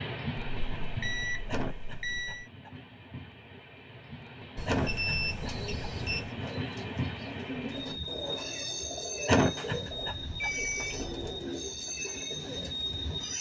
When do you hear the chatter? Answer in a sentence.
You can't hear the chatter here.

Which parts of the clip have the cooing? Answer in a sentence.
The cooing can be heard from 5.4 to 13.2 s.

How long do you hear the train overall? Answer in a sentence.
The train can be heard for 13 seconds in total.